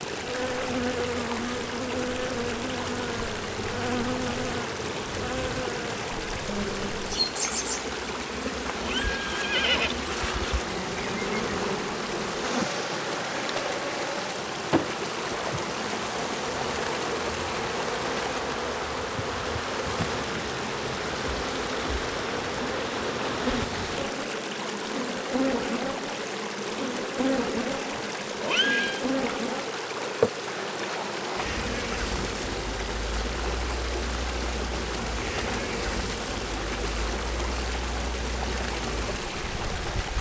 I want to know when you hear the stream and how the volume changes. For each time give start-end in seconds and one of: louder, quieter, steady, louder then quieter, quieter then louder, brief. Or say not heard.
0.0-40.1 steady.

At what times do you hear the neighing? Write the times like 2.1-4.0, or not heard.
8.8-9.9, 27.6-29.1.